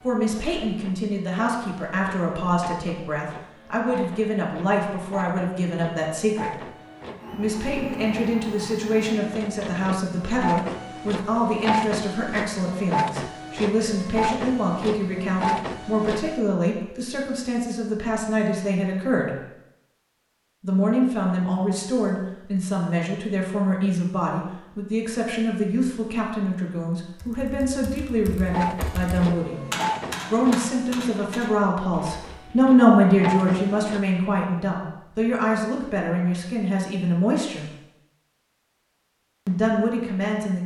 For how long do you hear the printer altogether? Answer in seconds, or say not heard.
22 s.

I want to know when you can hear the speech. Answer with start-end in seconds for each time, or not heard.
0.0-6.6, 7.3-19.4, 20.6-29.6, 30.3-37.6, 39.5-40.6.